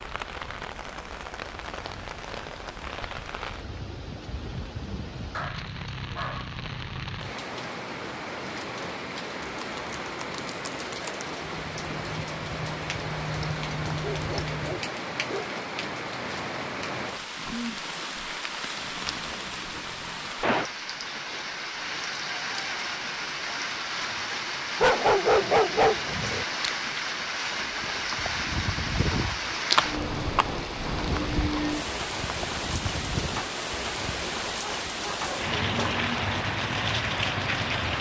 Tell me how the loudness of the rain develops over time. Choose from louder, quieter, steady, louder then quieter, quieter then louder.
louder.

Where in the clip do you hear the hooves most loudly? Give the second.
30 s.